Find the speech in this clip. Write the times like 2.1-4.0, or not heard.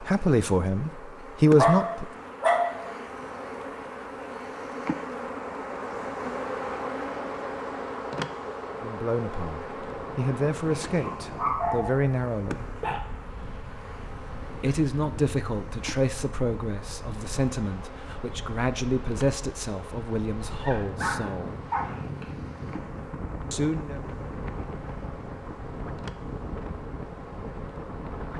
0.0-2.0, 8.8-12.7, 14.6-21.6, 23.5-24.0.